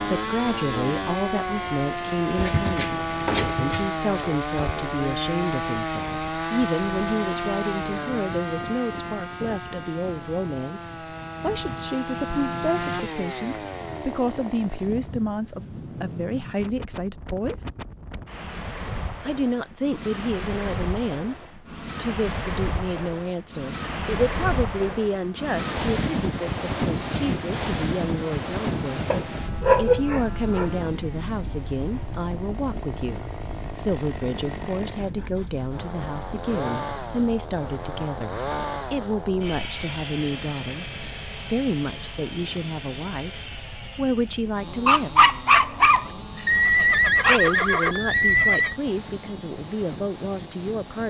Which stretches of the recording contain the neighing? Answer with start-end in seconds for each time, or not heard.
46.5-48.8.